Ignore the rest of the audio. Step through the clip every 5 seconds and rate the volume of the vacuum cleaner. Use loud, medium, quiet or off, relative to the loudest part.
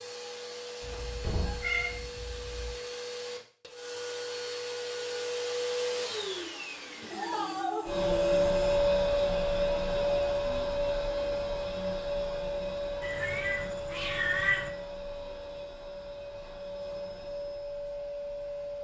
medium, loud, loud, medium.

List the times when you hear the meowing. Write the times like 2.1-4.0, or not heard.
0.8-2.8, 7.1-8.8, 13.0-14.7.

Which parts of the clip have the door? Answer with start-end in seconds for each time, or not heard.
0.9-1.8.